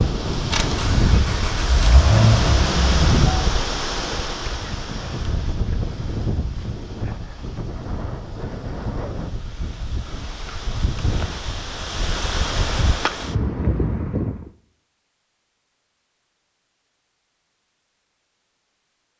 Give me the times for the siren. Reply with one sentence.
The siren can't be heard in this clip.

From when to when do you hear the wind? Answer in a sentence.
You can hear the wind from 0.0 to 14.5 s.